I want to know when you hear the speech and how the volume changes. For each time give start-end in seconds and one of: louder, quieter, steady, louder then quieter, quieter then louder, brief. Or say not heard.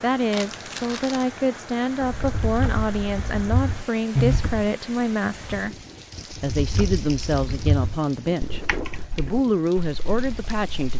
0.0-10.9 steady.